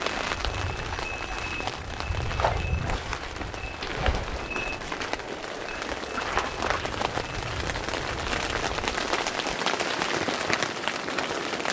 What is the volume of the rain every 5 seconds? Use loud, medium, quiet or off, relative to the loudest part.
medium, loud, loud.